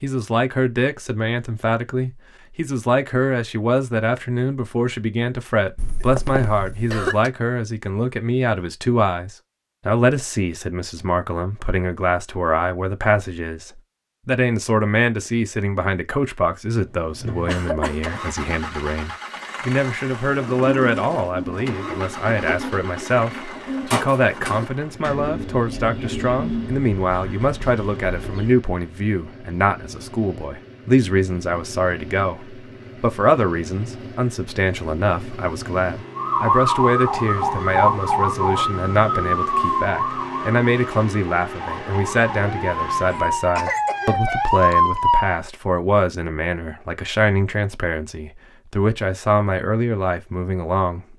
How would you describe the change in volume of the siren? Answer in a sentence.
The volume of the siren goes down, then up.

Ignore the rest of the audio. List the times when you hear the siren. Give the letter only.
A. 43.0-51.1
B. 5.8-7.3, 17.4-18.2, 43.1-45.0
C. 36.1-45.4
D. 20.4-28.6
C.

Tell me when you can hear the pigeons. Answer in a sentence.
You can hear the pigeons from 20.4 to 28.6 s.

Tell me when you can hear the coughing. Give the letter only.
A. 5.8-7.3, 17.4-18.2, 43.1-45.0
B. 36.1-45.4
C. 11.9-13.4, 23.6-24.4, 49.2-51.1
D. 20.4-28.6
A.